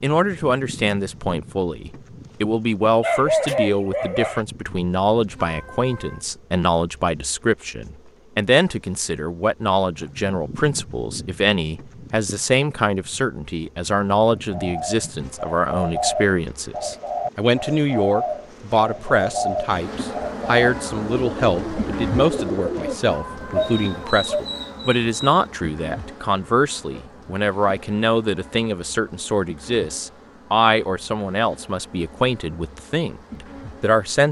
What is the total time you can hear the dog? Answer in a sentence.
You can hear the dog for 3 seconds altogether.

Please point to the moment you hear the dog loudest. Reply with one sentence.
The volume of the dog peaks at 3 seconds.